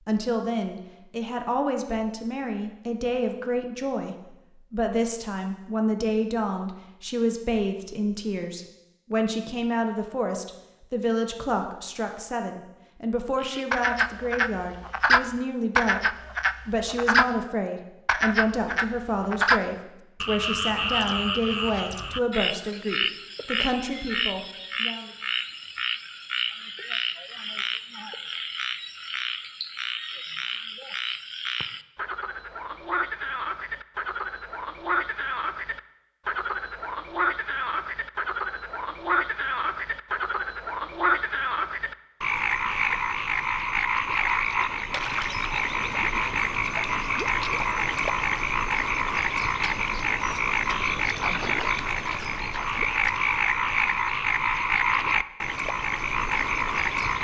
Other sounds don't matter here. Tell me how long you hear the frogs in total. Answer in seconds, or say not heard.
44 s.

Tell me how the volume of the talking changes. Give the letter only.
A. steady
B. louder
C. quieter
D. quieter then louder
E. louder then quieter
A.